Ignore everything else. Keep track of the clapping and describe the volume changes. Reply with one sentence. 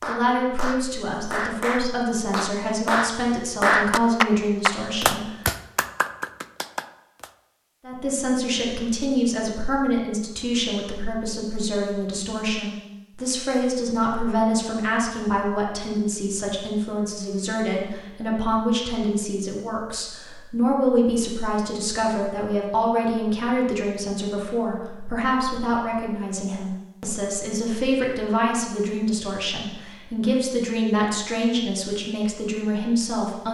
The volume of the clapping goes up, then down.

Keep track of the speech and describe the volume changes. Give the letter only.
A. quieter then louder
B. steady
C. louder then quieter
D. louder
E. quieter
B.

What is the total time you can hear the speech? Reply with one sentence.
The speech can be heard for 31 seconds in total.